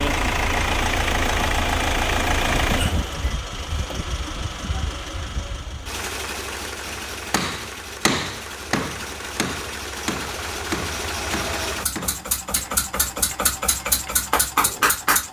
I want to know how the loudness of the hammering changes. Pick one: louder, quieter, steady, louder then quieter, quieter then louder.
quieter.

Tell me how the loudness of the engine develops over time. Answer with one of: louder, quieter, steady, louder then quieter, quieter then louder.
quieter then louder.